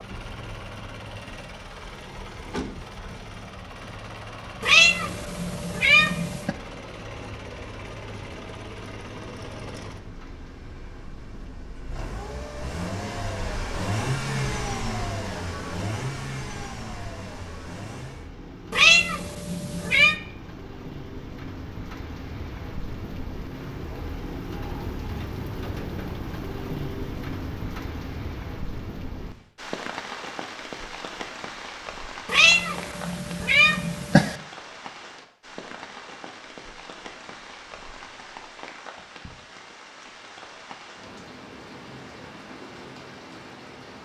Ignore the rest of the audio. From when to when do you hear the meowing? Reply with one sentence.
The meowing can be heard from 4.6 to 6.5 s, from 18.7 to 20.1 s and from 32.2 to 34.4 s.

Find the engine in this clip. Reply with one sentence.
The engine can be heard from 0.0 to 18.3 s.